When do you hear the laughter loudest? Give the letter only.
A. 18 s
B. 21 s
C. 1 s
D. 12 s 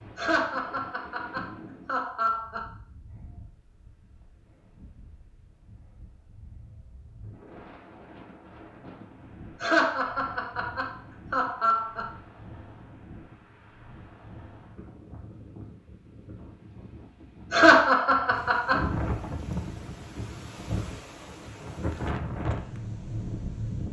A.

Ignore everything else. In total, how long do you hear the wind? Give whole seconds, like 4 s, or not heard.
24 s.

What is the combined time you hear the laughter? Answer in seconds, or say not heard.
6 s.